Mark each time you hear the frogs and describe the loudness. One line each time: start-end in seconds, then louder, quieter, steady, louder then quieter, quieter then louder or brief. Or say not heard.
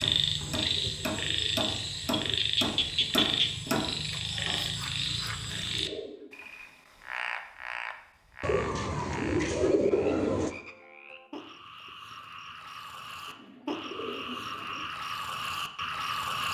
0.0-16.4 quieter then louder.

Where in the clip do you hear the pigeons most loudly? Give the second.
10 s.